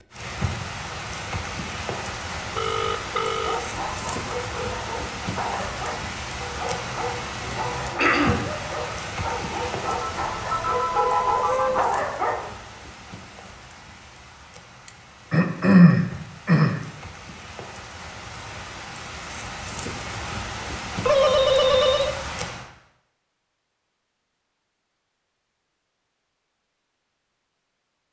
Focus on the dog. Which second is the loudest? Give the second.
12 s.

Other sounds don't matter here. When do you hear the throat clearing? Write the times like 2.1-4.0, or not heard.
8.0-8.4, 14.8-16.8.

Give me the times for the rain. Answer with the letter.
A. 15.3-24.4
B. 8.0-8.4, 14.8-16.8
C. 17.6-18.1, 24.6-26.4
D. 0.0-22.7
D.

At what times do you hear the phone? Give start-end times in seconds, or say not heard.
2.5-3.6, 9.8-11.8, 21.1-22.1.